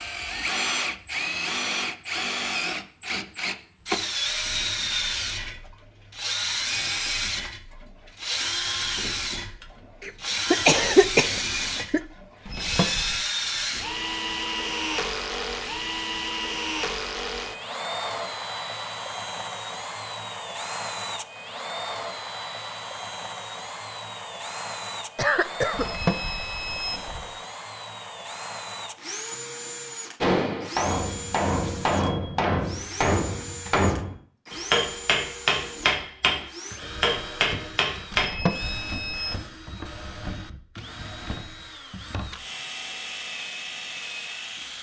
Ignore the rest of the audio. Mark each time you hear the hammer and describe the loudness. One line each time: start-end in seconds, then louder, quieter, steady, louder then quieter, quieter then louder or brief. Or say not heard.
30.2-38.4 steady.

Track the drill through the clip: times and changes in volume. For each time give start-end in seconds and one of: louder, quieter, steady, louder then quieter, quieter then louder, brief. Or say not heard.
0.0-44.7 quieter.